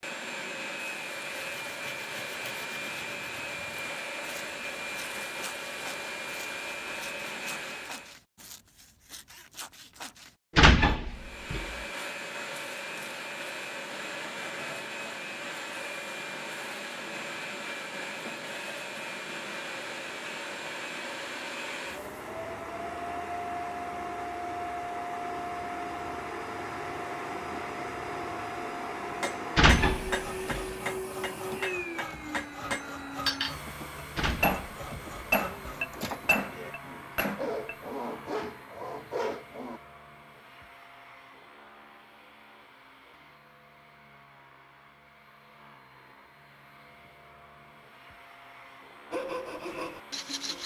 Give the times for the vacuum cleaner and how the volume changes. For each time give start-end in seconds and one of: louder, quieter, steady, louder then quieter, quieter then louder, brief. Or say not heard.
0.0-8.2 steady
11.1-50.6 quieter.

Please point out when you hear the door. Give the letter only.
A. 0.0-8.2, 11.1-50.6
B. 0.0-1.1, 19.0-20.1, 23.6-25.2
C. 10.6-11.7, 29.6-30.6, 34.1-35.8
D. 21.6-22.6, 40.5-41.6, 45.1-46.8
C.